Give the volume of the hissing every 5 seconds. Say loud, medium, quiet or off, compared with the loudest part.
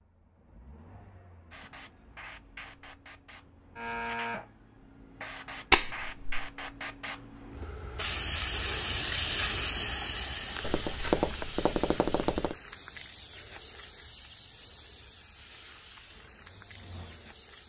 medium, loud, medium, quiet.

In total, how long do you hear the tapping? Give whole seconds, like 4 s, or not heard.
3 s.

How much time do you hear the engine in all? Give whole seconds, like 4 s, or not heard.
6 s.